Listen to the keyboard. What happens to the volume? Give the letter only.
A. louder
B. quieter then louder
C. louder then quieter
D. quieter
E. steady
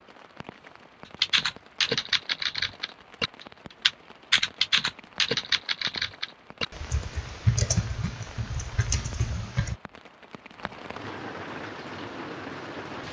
D.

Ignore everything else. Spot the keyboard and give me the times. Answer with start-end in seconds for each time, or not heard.
1.2-9.8.